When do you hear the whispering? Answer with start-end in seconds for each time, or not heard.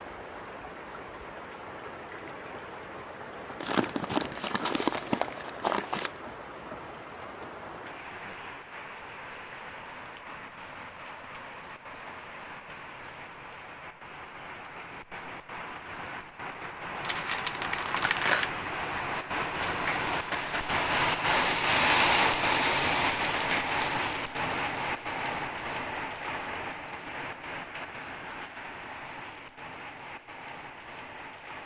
not heard.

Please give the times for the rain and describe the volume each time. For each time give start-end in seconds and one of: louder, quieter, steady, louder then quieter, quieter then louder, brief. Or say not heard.
0.0-31.6 louder then quieter.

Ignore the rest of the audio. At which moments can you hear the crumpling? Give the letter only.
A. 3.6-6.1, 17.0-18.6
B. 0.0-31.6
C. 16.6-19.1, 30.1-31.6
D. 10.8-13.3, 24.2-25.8
A.